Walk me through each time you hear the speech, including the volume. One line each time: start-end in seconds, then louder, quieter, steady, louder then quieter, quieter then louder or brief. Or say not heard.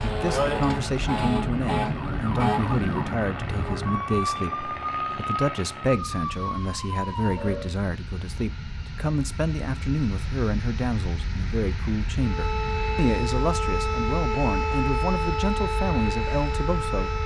0.0-17.2 steady.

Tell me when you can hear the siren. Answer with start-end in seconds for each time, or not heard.
0.0-7.7, 12.2-17.2.